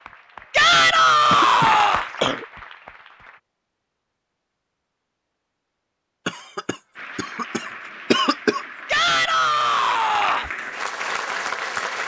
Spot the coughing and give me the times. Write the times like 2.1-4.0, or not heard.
0.8-2.5, 6.2-8.7.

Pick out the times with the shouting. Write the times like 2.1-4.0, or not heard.
0.5-2.0, 8.8-10.5.